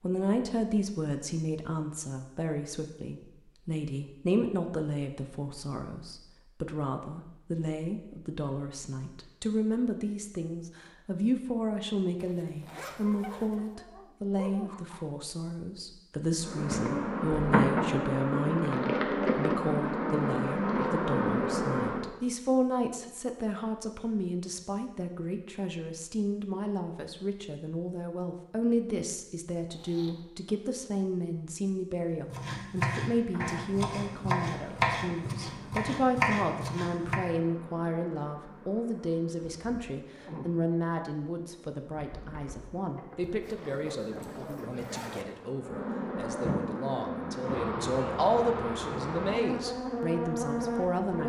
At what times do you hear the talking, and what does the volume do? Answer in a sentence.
The talking can be heard from 0.0 to 51.2 s, at a steady volume.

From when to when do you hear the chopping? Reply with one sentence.
The chopping can be heard from 32.1 to 37.2 s.